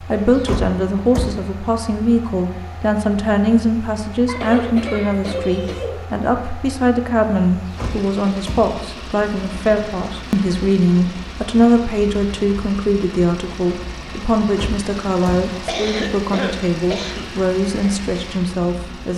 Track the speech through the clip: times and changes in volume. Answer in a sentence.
The speech can be heard from 0.0 to 19.1 s, at a steady volume.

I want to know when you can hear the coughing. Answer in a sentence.
You can hear the coughing from 4.2 to 6.0 s and from 15.7 to 17.4 s.